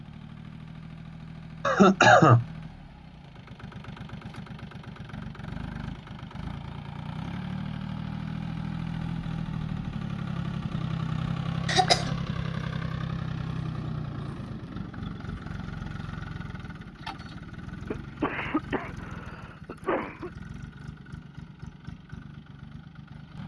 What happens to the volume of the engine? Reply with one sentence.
The volume of the engine goes up, then down.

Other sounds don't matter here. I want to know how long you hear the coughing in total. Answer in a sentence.
You can hear the coughing for 4 seconds altogether.